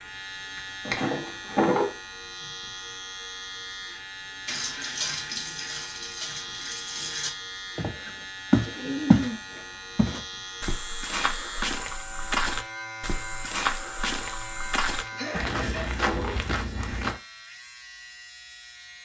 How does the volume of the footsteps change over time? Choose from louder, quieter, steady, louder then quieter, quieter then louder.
quieter.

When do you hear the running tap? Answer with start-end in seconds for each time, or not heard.
4.5-7.3.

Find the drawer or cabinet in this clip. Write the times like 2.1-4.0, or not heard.
0.6-1.9, 15.3-16.4.